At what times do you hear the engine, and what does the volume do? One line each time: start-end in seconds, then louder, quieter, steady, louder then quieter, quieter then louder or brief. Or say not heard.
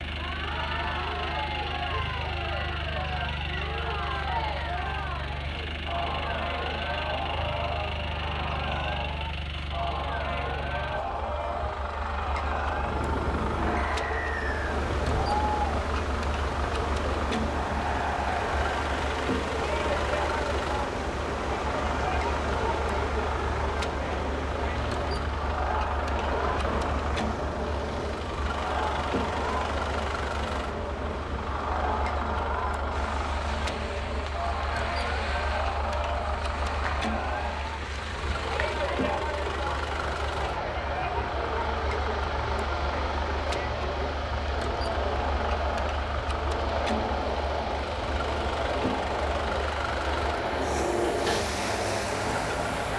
0.0-52.9 steady.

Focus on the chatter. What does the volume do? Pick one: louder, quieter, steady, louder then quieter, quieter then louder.
steady.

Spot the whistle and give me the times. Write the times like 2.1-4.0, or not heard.
13.8-14.8.